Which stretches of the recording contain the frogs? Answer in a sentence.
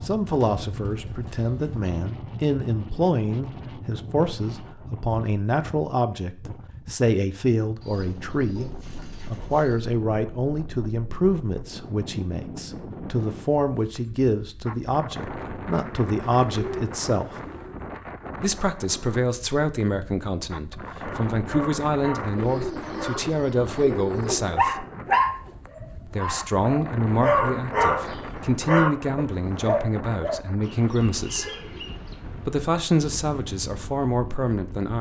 You can't hear the frogs here.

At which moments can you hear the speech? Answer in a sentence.
You can hear the speech from 0.0 to 17.2 s, from 18.4 to 24.9 s, from 26.1 to 31.4 s and from 32.5 to 34.9 s.